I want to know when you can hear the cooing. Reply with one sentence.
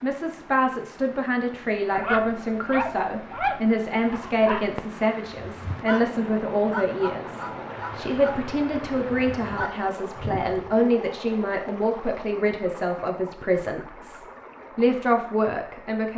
The cooing can't be heard in this clip.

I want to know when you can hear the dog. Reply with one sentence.
The dog can be heard from 1.9 to 10.8 s.